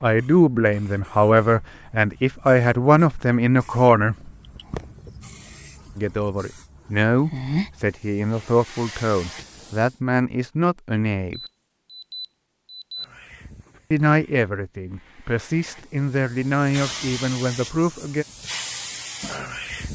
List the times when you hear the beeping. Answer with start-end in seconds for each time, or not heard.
11.3-13.1.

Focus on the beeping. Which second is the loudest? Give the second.
13 s.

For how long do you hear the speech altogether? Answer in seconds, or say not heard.
14 s.